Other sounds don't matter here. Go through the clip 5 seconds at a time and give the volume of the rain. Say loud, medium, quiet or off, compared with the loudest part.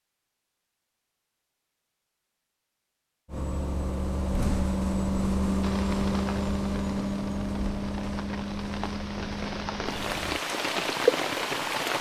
off, quiet, loud.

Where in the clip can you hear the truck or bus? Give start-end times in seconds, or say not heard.
3.2-10.4.